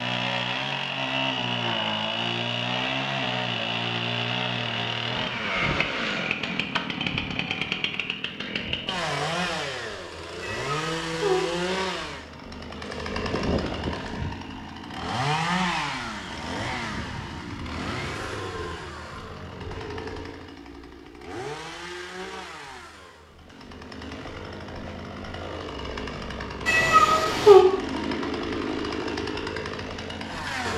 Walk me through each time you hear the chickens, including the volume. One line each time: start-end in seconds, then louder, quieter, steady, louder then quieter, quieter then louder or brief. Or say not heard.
not heard.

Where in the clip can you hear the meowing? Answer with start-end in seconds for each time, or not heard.
10.4-11.4, 26.6-27.6.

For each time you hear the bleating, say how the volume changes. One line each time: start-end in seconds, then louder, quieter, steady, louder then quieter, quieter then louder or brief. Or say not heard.
not heard.